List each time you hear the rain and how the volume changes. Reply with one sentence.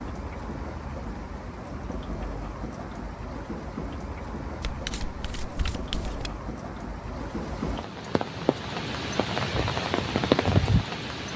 The rain can be heard from 0.0 to 11.3 s, getting louder.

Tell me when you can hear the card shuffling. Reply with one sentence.
You can hear the card shuffling from 4.6 to 6.3 s.